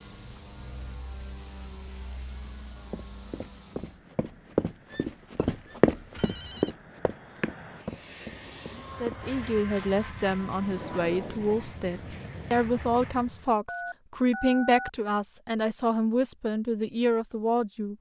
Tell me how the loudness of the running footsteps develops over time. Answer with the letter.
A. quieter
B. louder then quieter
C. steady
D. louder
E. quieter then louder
B.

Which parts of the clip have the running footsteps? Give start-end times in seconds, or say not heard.
2.9-9.2.